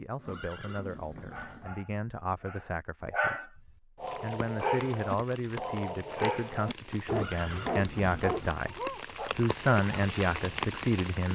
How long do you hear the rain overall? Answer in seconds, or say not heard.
7 s.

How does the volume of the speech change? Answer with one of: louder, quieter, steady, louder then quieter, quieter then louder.
louder.